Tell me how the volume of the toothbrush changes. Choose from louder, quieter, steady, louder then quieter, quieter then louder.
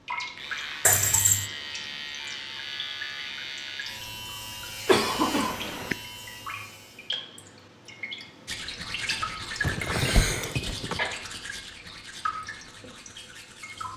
quieter.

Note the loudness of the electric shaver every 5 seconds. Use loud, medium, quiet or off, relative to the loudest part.
loud, loud, off.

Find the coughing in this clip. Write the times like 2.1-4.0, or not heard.
0.8-1.5, 4.8-6.0, 9.6-11.0.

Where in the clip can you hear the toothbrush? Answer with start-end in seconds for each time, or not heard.
8.4-13.9.